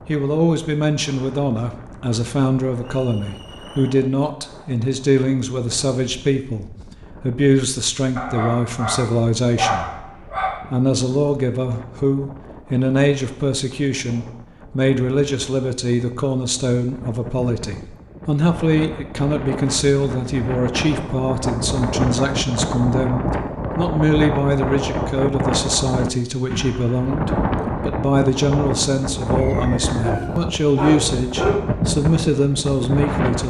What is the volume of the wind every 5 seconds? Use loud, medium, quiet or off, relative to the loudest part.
quiet, quiet, quiet, medium, loud, loud, loud.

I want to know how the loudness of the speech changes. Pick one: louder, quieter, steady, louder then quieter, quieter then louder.
steady.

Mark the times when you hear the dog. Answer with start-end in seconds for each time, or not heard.
8.2-10.6, 30.0-31.6.